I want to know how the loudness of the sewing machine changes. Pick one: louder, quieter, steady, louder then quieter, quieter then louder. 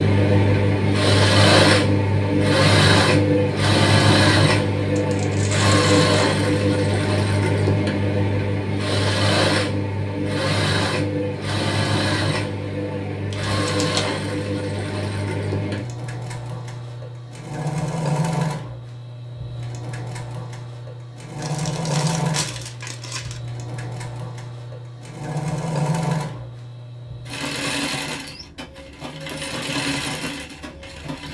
quieter.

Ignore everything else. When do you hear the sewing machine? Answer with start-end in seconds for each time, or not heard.
0.0-31.3.